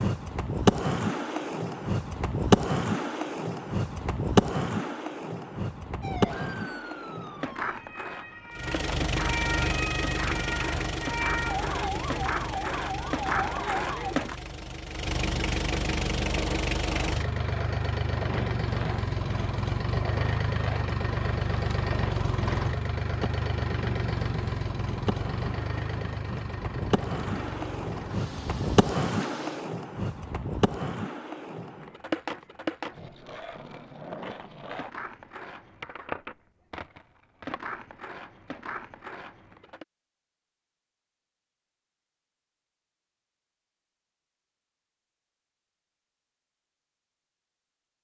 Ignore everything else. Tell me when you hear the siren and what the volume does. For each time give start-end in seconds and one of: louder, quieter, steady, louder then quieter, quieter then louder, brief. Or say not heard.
6.0-14.2 louder.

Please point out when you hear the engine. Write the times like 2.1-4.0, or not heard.
8.5-29.7.